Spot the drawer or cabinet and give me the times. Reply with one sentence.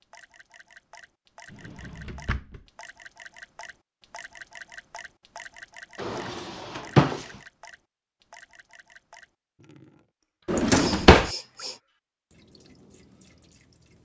You can hear the drawer or cabinet from 1.5 to 2.6 s, from 6.0 to 7.2 s and from 10.4 to 11.3 s.